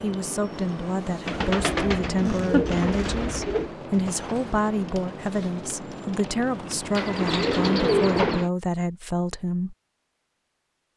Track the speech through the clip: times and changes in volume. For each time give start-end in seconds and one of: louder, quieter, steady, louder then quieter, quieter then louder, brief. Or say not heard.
0.0-9.8 steady.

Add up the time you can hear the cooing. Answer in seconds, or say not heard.
4 s.